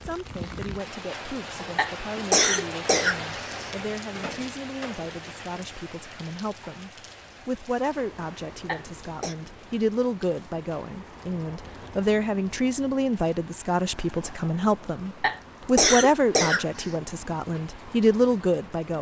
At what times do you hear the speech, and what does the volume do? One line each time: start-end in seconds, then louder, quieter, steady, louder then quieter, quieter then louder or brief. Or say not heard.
0.0-18.9 louder.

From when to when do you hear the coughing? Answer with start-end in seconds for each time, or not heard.
1.8-3.7, 8.7-9.3, 15.2-16.9.